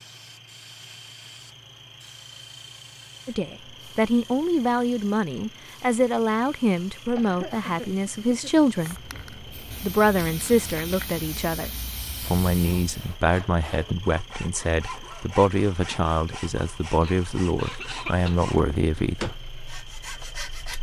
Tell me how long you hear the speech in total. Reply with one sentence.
You can hear the speech for 17 seconds altogether.